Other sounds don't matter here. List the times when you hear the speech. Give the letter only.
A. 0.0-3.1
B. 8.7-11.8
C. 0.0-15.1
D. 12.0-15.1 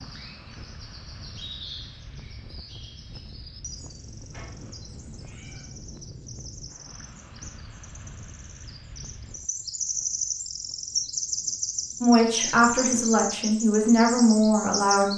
D.